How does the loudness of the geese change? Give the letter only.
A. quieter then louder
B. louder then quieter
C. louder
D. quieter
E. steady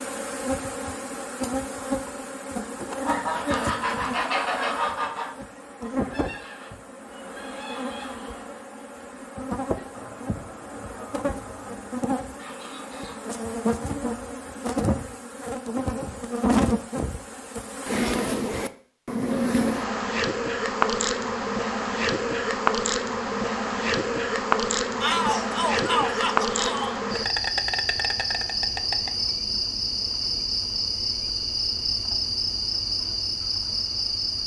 D.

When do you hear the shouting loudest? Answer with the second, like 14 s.
25 s.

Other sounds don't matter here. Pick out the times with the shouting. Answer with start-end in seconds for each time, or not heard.
25.0-27.0.